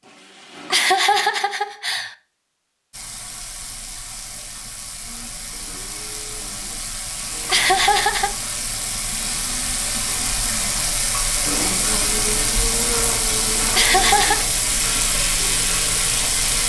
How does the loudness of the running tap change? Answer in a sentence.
The loudness of the running tap goes up.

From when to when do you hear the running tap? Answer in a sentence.
The running tap can be heard from 2.9 to 16.6 s.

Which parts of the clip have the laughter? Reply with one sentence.
You can hear the laughter from 0.7 to 2.1 s, from 7.5 to 8.3 s and from 13.7 to 14.4 s.